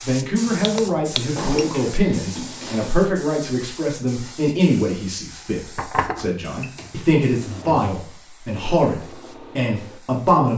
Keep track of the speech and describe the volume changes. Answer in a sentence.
The loudness of the speech stays about the same.